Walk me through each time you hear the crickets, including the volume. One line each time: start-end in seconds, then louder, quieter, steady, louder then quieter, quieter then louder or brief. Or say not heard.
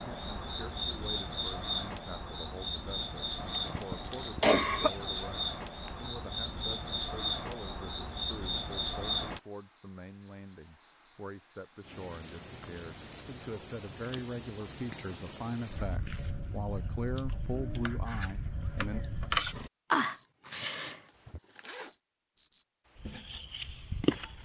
0.0-24.4 louder.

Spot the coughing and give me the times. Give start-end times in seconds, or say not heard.
3.4-4.9, 19.9-20.9.